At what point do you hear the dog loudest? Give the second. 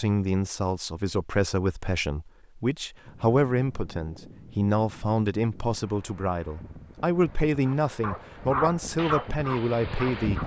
9 s.